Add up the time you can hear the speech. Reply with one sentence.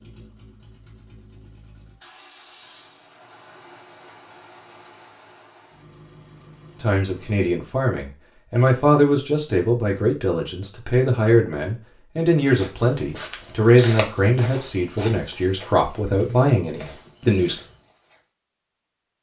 The speech can be heard for 11 seconds in total.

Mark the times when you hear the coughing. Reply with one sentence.
The coughing can't be heard in this clip.